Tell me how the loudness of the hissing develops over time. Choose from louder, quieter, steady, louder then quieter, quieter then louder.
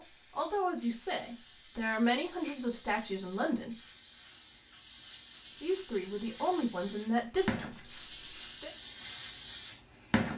louder.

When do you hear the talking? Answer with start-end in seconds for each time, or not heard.
0.0-3.8, 5.6-8.7.